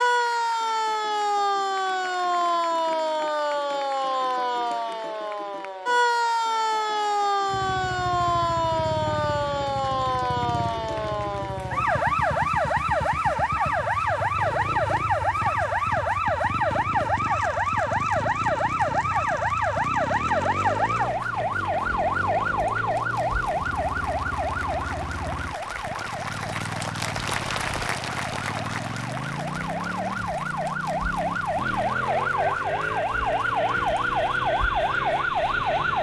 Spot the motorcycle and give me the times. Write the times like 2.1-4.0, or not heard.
7.5-35.9.